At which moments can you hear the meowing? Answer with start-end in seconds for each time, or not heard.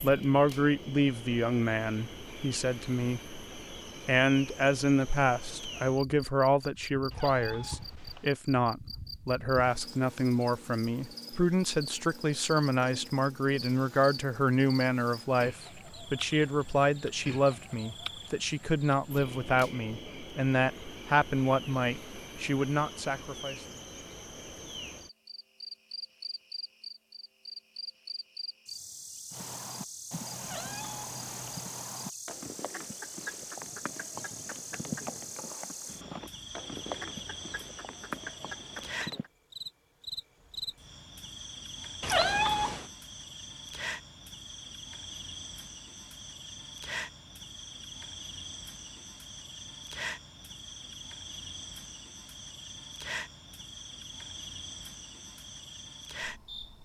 7.1-8.3, 30.4-31.6, 42.0-42.9.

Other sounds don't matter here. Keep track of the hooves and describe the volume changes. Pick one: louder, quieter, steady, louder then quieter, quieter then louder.
steady.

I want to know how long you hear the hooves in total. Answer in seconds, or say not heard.
10 s.